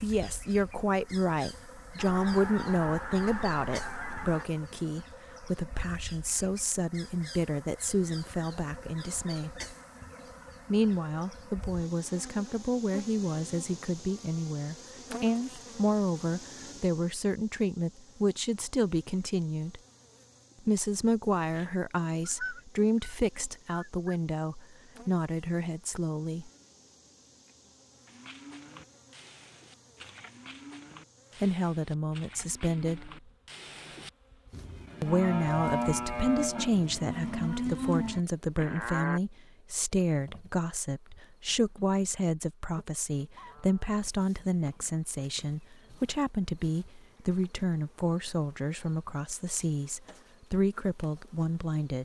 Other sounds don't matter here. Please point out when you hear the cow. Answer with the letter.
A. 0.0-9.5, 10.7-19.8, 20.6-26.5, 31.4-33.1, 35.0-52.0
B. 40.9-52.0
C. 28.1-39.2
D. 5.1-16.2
C.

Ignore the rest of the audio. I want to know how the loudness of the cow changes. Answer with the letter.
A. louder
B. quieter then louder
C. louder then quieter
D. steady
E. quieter
A.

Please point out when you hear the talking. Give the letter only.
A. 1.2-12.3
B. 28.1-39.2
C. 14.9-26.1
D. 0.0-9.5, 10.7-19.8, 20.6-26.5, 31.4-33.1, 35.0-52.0
D.